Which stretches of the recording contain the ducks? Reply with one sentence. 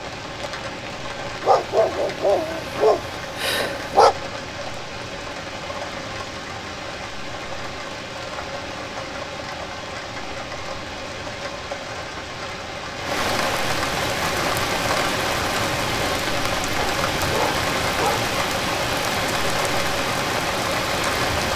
You can't hear the ducks here.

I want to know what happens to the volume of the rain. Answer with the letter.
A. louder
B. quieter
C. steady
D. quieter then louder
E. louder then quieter
A.